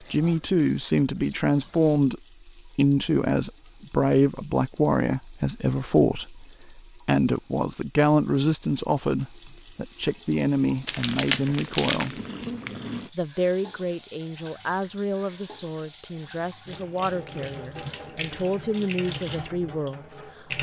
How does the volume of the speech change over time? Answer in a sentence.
The loudness of the speech goes down.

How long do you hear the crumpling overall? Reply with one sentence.
You can hear the crumpling for 2 seconds altogether.